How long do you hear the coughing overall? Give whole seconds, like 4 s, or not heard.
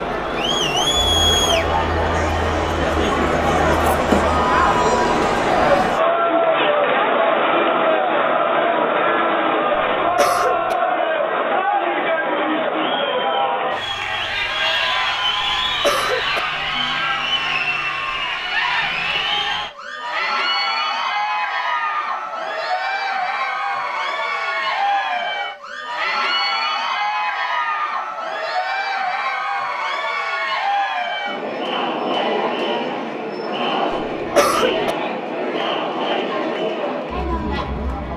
3 s.